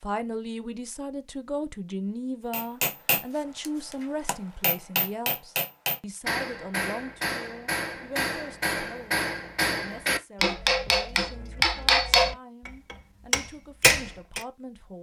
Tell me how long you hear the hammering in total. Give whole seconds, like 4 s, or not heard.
12 s.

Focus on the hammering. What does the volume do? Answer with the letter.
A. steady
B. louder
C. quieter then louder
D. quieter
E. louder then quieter
B.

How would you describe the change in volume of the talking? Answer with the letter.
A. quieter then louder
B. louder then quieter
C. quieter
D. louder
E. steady
C.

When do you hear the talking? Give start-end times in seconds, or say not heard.
0.0-14.9.